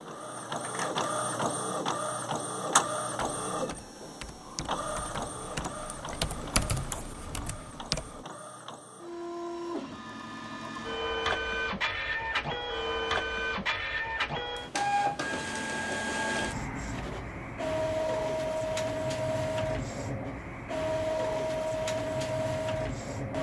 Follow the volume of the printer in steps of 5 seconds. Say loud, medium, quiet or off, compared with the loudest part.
loud, medium, loud, loud, loud.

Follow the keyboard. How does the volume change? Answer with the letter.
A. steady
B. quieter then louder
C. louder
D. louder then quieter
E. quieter
D.